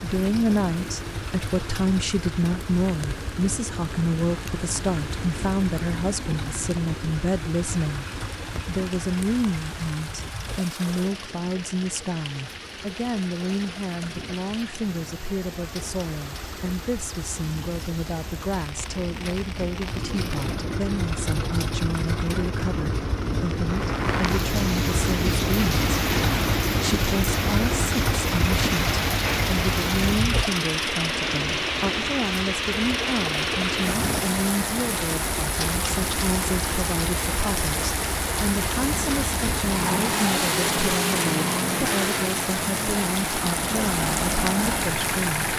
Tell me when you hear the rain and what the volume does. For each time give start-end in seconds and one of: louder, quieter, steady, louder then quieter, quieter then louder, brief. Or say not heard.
0.0-45.5 louder.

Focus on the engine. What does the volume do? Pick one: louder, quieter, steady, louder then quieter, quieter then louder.
quieter then louder.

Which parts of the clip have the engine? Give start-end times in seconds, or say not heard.
0.0-45.5.